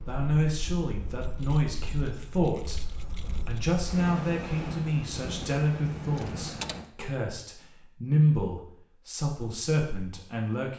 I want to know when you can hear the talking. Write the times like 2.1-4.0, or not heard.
0.1-2.8, 3.4-10.7.